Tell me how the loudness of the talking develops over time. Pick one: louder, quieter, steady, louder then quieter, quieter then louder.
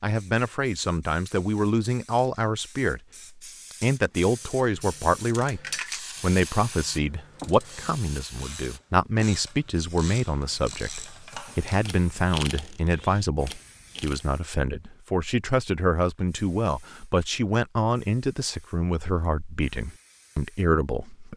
steady.